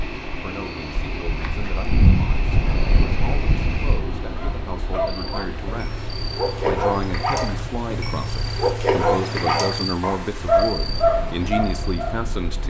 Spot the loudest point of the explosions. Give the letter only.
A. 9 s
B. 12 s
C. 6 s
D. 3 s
D.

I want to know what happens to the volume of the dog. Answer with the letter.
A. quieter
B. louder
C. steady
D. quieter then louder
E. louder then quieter
B.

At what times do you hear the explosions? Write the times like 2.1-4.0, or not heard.
2.5-4.5.